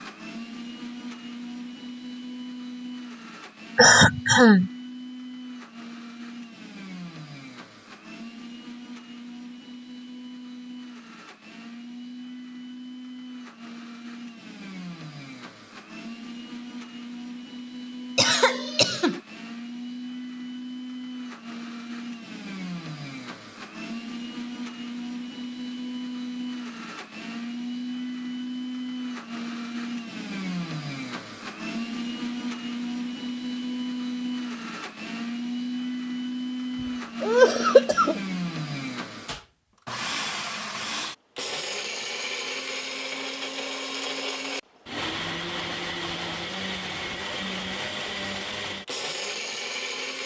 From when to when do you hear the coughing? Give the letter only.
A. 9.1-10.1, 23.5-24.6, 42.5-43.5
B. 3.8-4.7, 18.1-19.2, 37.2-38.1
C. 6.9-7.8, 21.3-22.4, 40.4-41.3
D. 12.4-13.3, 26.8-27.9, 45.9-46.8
B.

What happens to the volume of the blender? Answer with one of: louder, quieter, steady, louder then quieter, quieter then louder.
louder.